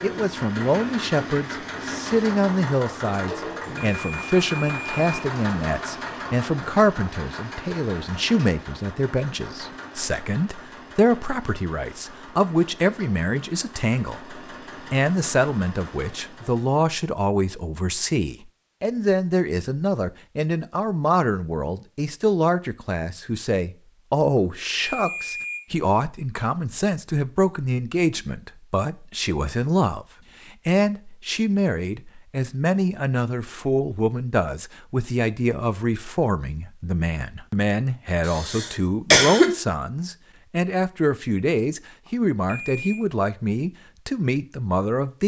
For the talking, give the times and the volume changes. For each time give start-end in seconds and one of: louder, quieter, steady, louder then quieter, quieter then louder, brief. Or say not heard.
0.0-45.2 steady.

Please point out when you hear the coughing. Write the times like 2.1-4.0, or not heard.
38.2-39.5.